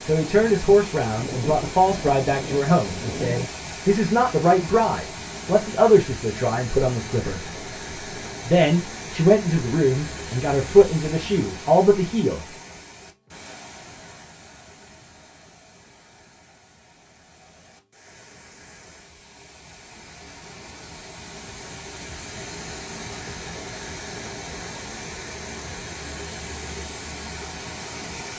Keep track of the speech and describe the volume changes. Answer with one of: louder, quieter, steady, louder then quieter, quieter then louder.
steady.